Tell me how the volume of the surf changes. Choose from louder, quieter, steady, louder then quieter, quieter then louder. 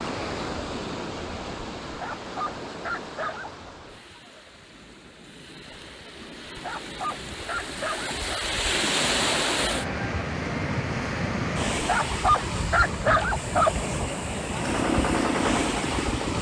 quieter then louder.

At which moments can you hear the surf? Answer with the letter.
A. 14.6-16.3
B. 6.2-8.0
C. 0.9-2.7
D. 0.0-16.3
D.